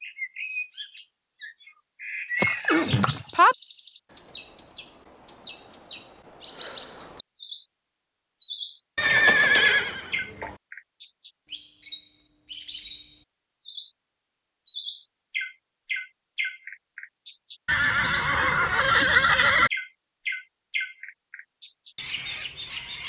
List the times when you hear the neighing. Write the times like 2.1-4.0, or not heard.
2.4-3.5, 8.9-10.6, 17.6-19.7.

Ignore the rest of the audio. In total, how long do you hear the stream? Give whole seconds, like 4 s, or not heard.
not heard.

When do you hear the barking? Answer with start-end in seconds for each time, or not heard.
not heard.